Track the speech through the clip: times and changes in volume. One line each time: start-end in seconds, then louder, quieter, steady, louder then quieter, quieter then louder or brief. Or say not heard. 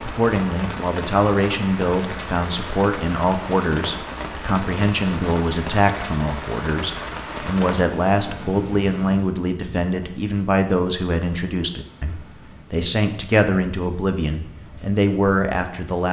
0.0-16.0 steady.